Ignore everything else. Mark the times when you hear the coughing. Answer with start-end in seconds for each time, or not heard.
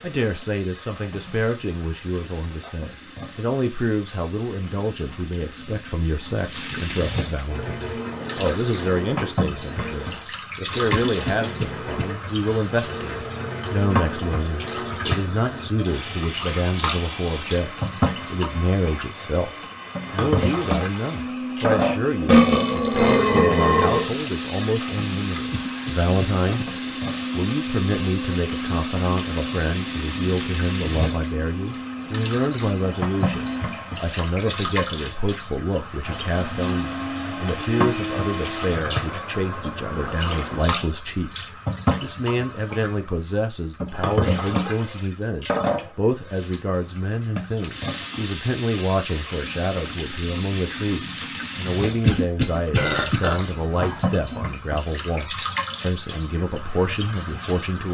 10.9-12.1, 25.5-26.6, 52.0-53.2.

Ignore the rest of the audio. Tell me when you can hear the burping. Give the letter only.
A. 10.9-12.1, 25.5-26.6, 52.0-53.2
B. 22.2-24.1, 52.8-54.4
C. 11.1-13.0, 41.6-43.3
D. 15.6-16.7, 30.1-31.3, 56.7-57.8
B.